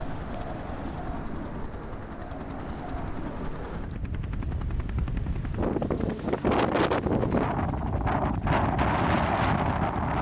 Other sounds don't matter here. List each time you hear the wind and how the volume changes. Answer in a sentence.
The wind can be heard from 0.0 to 10.1 s, getting louder.